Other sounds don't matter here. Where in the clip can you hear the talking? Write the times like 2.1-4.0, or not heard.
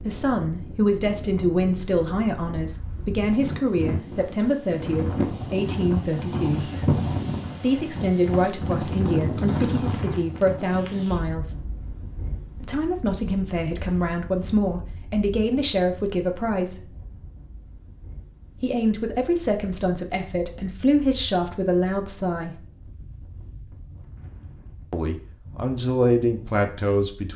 0.0-6.7, 7.6-11.7, 12.6-16.9, 18.6-22.6, 24.9-27.3.